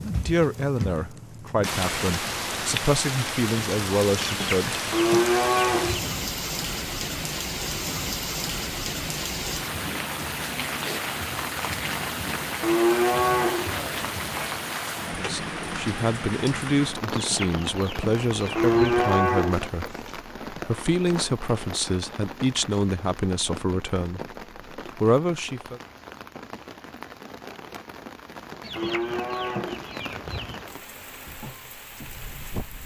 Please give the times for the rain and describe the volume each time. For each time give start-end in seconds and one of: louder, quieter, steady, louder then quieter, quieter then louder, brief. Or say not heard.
0.0-32.8 quieter.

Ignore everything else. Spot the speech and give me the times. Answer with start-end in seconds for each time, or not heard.
0.0-4.8, 15.2-25.8.